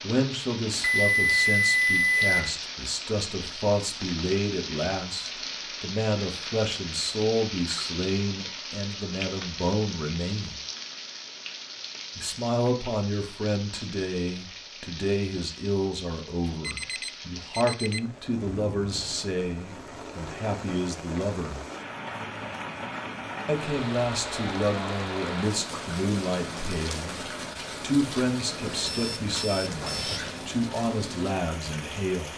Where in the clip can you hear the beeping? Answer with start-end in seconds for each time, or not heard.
0.8-2.4, 16.4-18.0, 28.8-30.4.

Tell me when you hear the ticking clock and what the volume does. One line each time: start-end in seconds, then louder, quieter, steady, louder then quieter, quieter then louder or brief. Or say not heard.
not heard.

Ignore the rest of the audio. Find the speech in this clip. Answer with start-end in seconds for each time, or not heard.
0.0-10.6, 12.2-21.6, 23.4-32.3.